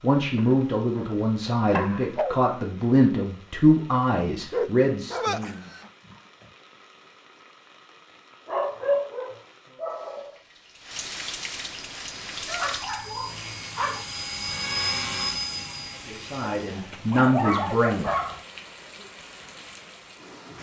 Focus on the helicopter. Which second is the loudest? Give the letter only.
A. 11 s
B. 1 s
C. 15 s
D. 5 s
C.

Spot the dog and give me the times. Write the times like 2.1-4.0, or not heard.
0.3-2.5, 4.5-6.2, 8.4-10.3, 12.4-14.1, 16.4-18.4.